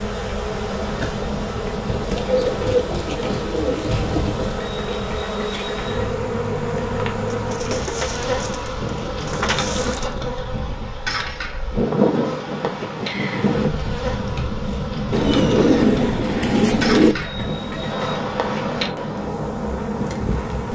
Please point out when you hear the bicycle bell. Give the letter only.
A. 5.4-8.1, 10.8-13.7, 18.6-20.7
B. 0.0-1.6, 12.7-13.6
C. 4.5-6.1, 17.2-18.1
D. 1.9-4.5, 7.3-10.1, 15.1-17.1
C.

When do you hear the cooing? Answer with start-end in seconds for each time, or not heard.
1.9-4.5, 7.3-10.1, 15.1-17.1.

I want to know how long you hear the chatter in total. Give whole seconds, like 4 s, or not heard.
not heard.